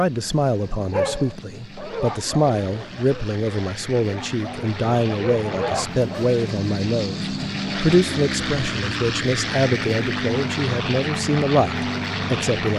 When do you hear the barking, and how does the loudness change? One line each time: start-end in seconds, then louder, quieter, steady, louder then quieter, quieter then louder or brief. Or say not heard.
0.6-6.3 quieter then louder.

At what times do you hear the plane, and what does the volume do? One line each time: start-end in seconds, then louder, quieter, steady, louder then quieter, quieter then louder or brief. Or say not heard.
0.0-12.7 louder.